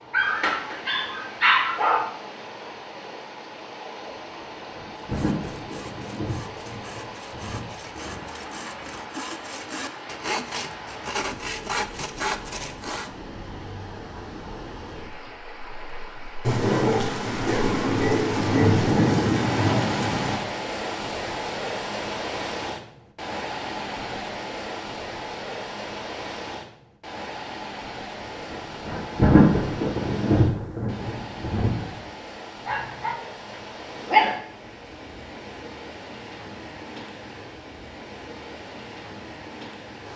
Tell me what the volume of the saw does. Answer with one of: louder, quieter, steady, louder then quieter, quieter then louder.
louder.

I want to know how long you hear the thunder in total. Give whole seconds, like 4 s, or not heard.
12 s.